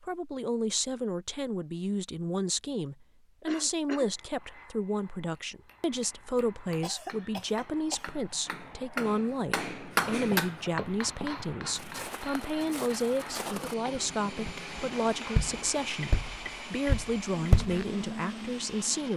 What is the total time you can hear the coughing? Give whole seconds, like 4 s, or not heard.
3 s.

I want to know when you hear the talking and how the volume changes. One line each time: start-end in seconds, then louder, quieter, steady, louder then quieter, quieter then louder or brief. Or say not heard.
0.0-19.1 steady.